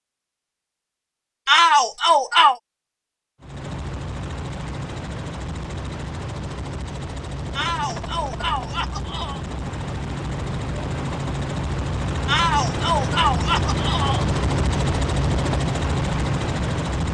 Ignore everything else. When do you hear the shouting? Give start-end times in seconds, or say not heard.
1.4-2.5, 7.5-9.4, 12.2-14.2.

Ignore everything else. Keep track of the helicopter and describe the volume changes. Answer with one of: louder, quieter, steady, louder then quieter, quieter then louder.
louder.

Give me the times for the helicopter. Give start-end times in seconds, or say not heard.
3.4-17.0.